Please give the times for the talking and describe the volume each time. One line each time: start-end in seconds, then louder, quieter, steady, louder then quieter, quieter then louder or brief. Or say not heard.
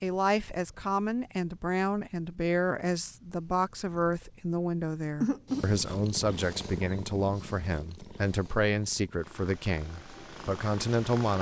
0.0-11.3 steady.